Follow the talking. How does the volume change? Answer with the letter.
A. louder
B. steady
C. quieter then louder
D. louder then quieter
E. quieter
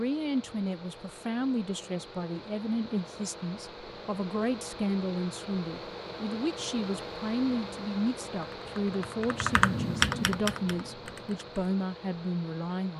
B.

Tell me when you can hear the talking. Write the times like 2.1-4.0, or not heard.
0.0-12.9.